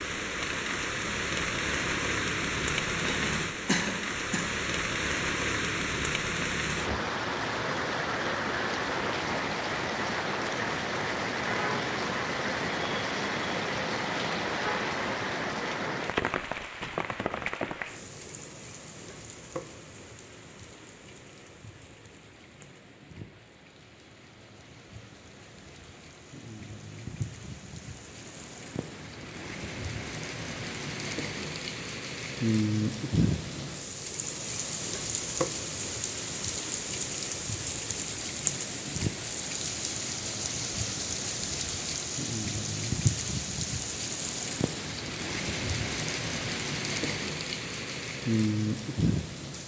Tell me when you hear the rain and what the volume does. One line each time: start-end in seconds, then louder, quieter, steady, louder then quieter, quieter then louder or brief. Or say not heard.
0.0-49.6 quieter then louder.